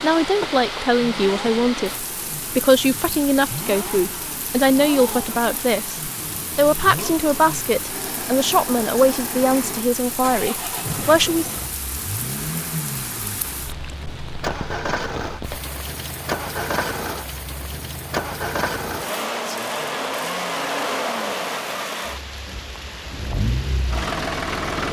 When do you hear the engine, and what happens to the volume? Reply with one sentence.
You can hear the engine from 0.0 to 24.8 s, getting louder.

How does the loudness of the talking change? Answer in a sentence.
The loudness of the talking stays about the same.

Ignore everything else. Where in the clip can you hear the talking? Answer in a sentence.
You can hear the talking from 0.0 to 11.5 s.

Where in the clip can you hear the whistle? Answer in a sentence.
The whistle can't be heard in this clip.